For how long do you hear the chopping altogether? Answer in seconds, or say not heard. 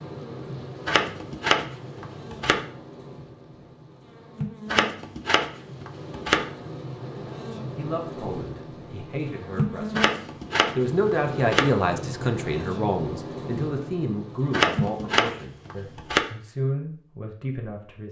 7 s.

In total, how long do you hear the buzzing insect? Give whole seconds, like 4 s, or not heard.
15 s.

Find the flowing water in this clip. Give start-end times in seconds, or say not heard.
not heard.